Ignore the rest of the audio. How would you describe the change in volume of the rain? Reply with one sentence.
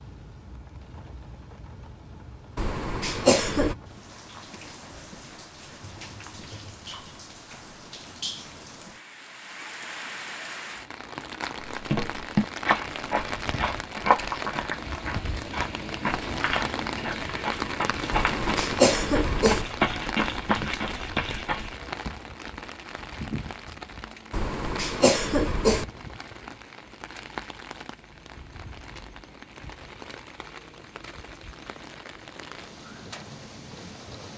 The volume of the rain goes up, then down.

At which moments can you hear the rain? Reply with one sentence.
You can hear the rain from 0.0 to 34.3 s.